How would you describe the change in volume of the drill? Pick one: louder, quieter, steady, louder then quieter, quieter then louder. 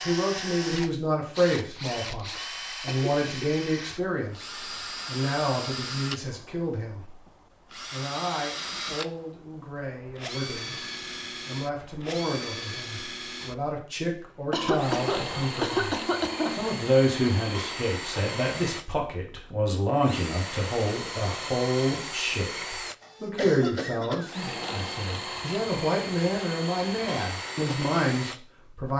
steady.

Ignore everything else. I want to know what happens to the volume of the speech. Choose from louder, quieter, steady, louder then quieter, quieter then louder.
quieter then louder.